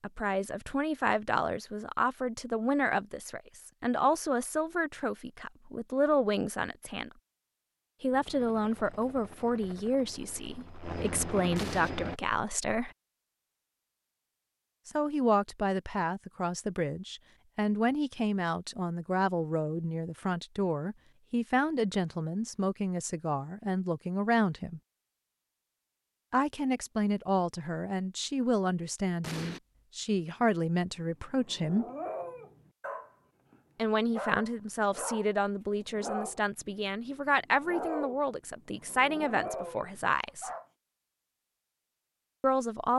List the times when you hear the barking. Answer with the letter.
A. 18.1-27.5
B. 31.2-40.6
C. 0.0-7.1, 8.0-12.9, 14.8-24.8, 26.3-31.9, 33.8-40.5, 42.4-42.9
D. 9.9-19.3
B.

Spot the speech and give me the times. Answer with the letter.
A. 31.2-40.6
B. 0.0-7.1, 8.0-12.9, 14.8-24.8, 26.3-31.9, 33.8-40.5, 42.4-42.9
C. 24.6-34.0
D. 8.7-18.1
B.